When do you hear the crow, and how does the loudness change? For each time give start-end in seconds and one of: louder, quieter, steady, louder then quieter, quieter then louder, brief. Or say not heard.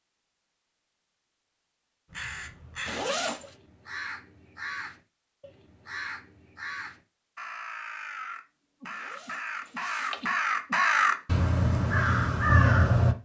2.1-13.2 louder.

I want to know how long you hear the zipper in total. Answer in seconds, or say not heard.
2 s.